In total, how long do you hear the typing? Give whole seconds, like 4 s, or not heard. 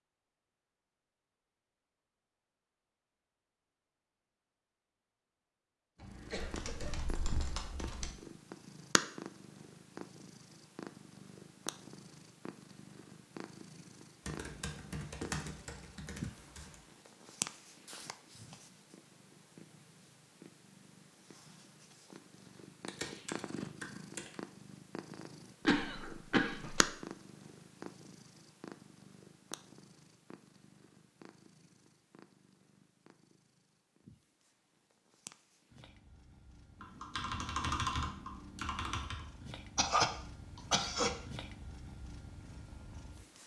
8 s.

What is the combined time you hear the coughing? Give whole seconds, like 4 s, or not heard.
4 s.